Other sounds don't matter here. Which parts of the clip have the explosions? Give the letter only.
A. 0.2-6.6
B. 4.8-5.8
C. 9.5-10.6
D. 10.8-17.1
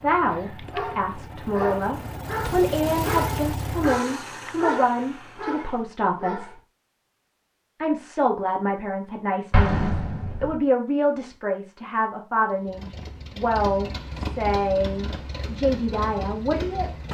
C.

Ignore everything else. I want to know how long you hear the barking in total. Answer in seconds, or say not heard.
6 s.